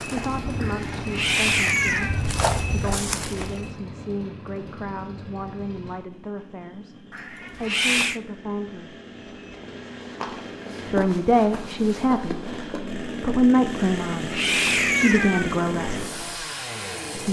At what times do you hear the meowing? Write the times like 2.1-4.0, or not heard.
0.6-2.2, 7.1-8.2, 13.8-15.6.